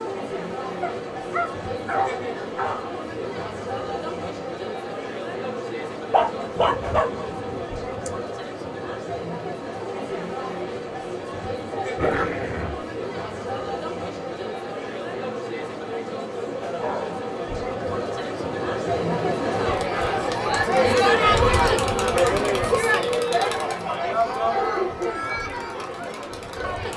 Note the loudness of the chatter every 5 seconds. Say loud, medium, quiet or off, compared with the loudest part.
medium, medium, medium, medium, loud, medium.